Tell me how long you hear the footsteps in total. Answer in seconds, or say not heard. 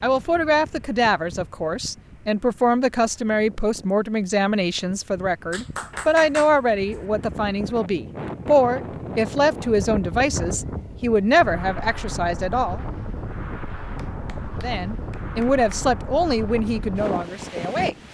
not heard.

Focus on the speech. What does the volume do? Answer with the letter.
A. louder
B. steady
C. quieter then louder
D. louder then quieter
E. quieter
B.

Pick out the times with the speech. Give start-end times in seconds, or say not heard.
0.0-12.8, 14.6-17.9.